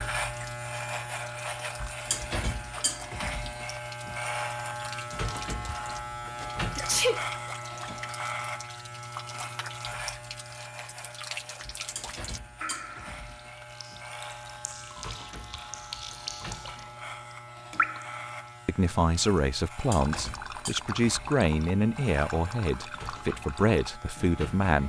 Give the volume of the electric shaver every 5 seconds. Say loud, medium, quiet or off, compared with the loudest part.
loud, loud, medium, medium, medium.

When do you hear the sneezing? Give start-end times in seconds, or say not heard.
6.8-7.2.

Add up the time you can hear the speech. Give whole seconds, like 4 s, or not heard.
6 s.